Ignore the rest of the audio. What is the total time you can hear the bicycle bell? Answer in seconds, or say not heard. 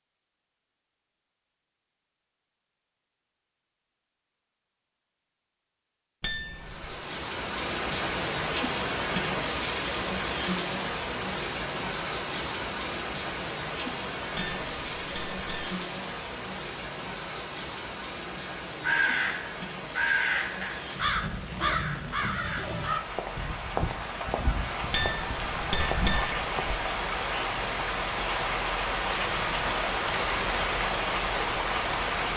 4 s.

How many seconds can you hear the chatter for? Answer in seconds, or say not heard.
not heard.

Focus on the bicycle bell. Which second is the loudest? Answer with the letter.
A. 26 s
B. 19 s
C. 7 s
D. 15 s
A.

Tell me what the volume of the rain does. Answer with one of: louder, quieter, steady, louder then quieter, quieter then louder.
quieter then louder.